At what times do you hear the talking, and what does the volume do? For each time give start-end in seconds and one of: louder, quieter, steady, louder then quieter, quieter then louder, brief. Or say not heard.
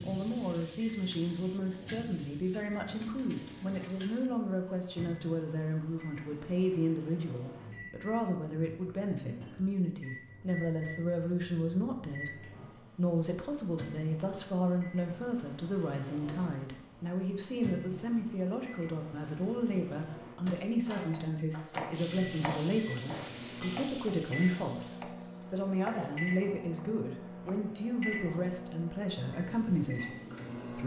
0.0-30.8 steady.